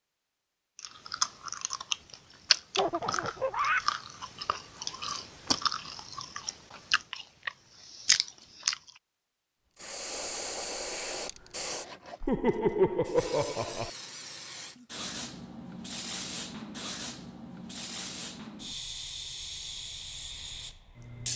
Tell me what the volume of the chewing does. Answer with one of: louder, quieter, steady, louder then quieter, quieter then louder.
quieter then louder.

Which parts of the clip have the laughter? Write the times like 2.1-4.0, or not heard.
2.8-3.9, 12.2-13.9.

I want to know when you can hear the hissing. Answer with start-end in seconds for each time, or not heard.
9.8-21.3.